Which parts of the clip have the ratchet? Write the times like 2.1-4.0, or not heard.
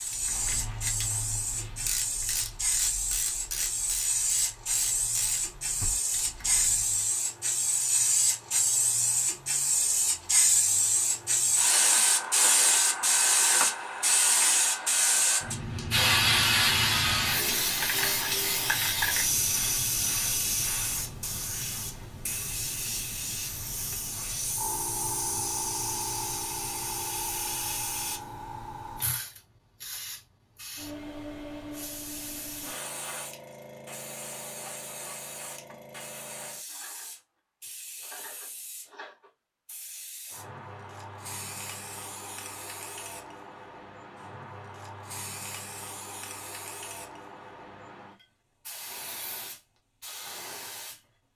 0.0-7.0.